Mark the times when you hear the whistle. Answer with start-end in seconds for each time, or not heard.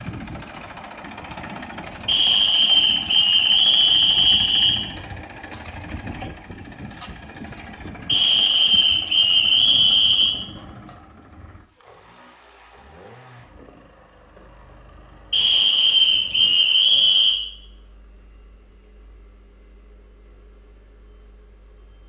2.0-4.8, 8.1-10.3, 15.3-17.4.